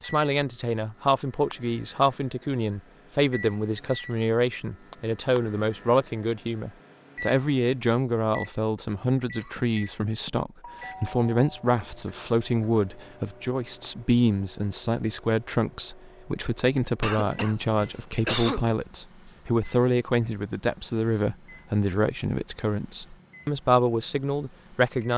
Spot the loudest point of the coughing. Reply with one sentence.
The loudest moment of the coughing is at 18 seconds.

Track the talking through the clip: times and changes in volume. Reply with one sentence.
You can hear the talking from 0.0 to 25.1 s, at a steady volume.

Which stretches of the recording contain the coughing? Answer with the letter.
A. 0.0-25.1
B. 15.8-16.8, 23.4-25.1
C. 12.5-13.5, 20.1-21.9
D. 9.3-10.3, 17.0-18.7
D.